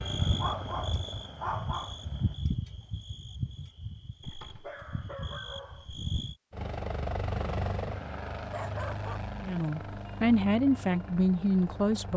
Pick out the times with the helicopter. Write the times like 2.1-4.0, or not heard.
0.0-2.4, 6.5-12.1.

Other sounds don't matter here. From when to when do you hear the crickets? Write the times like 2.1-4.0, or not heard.
0.0-6.3.